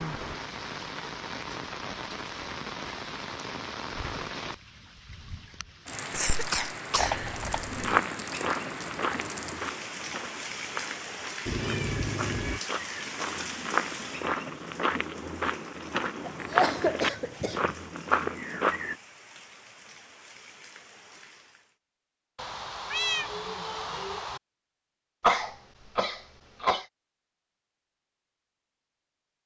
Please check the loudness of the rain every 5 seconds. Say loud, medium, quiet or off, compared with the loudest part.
loud, loud, loud, quiet, quiet, off.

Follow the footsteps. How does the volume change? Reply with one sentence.
The volume of the footsteps goes down, then up.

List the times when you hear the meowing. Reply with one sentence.
You can hear the meowing from 7.0 to 8.0 s, from 11.4 to 12.6 s and from 22.4 to 24.4 s.